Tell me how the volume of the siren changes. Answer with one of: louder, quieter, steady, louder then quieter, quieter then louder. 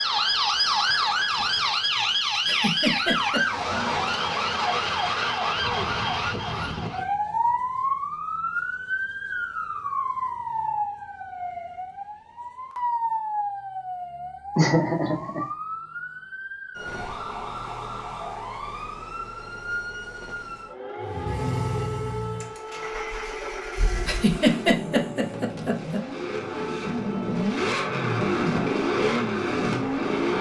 quieter.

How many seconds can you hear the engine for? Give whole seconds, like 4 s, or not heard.
9 s.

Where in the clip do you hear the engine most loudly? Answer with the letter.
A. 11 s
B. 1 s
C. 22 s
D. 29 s
D.